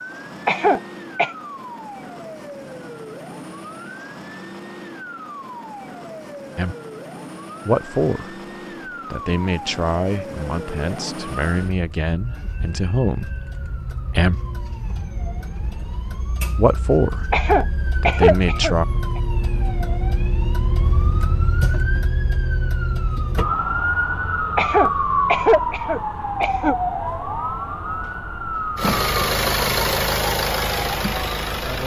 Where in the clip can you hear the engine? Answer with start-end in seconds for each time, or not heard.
28.8-31.8.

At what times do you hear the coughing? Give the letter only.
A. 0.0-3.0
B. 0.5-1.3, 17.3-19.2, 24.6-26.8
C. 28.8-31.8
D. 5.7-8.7
B.